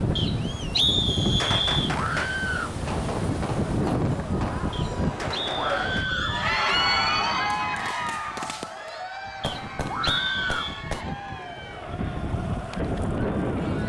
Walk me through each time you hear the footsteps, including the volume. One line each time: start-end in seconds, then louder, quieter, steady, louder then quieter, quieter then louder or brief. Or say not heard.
not heard.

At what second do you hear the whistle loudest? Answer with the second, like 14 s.
1 s.